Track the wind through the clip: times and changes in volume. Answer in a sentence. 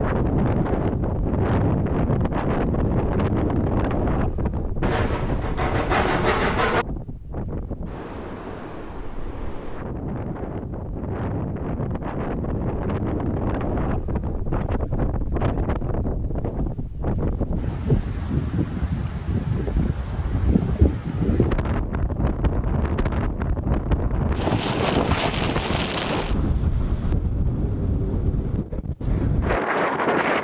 The wind can be heard from 0.0 to 30.3 s, getting quieter then louder.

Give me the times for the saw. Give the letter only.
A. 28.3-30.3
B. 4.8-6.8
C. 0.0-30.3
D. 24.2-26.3
B.